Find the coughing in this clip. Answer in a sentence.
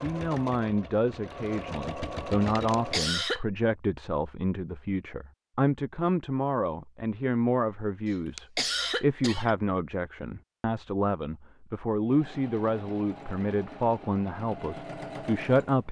You can hear the coughing from 2.7 to 3.4 s and from 8.1 to 9.6 s.